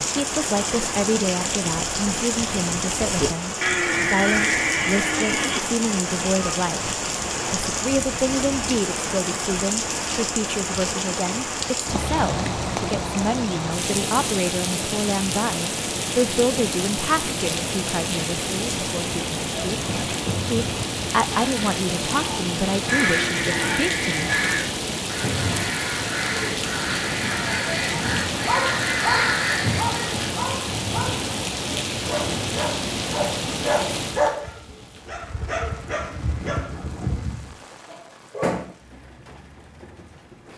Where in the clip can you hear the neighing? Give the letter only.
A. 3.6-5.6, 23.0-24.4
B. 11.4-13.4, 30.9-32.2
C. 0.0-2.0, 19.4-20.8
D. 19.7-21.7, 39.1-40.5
A.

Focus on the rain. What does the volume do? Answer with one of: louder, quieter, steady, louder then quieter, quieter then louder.
quieter.